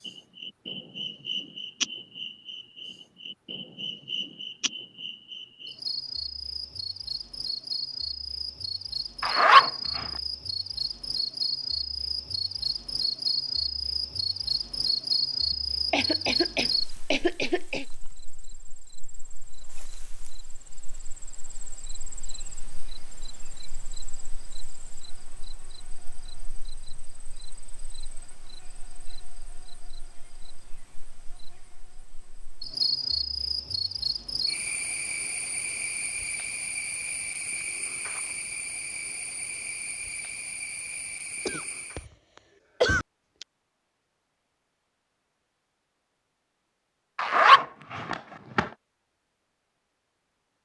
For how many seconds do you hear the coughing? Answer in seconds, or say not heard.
3 s.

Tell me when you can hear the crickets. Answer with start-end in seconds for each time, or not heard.
0.0-42.0.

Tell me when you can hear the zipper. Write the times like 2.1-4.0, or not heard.
9.2-10.1, 47.1-48.6.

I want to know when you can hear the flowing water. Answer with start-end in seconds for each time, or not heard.
not heard.